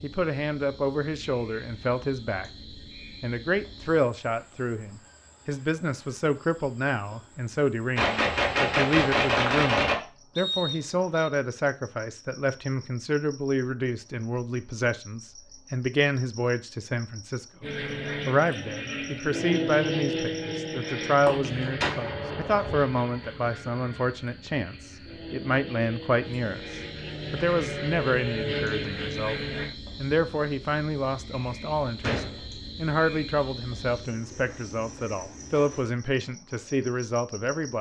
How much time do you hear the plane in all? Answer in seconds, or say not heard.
12 s.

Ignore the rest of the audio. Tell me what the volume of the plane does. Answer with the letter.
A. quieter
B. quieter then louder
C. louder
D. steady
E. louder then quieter
B.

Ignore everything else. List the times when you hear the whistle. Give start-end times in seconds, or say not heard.
10.3-11.3.